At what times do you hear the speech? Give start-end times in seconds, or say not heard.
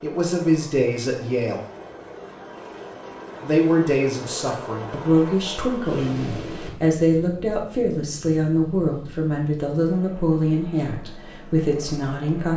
0.0-1.6, 3.4-12.5.